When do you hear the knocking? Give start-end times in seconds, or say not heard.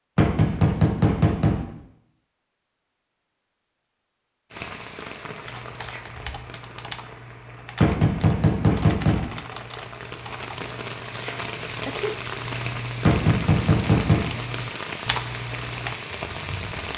0.1-1.6, 7.8-9.2, 13.1-14.2.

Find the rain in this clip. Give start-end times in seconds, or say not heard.
4.5-16.9.